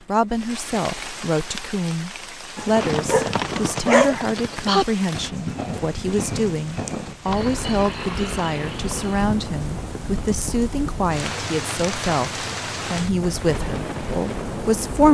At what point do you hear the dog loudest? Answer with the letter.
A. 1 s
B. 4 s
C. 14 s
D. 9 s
B.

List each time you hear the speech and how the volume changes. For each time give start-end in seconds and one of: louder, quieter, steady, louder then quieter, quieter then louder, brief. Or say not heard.
0.1-15.1 steady.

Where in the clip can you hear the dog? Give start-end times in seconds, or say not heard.
2.5-4.2.